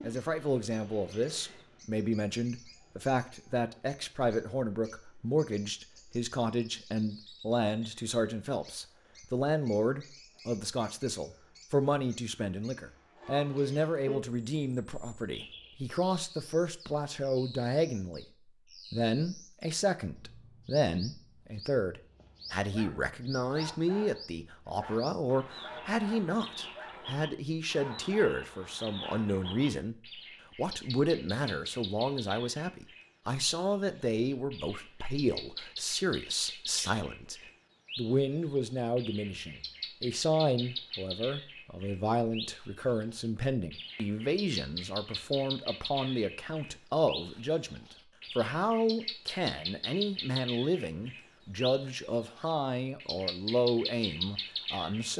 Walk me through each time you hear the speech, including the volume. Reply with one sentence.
The speech can be heard from 0.0 to 18.2 s, at a steady volume; from 18.9 to 29.9 s, at a steady volume; and from 30.6 to 55.1 s, at a steady volume.